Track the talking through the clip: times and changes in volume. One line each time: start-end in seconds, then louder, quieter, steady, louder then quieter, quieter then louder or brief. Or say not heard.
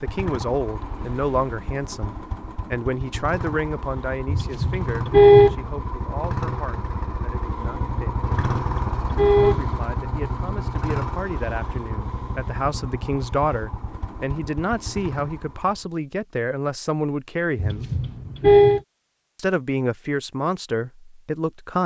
0.0-8.2 quieter
9.4-17.9 louder
19.4-21.8 brief.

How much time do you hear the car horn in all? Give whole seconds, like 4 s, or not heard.
4 s.